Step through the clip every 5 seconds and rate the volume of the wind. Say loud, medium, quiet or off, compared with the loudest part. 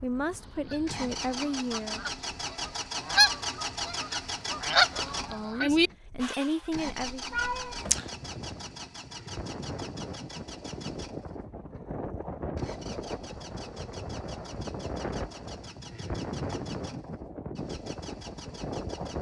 quiet, medium, loud, loud.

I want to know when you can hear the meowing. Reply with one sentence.
You can hear the meowing from 7.3 to 8.1 s.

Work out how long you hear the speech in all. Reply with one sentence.
The speech can be heard for 4 seconds in total.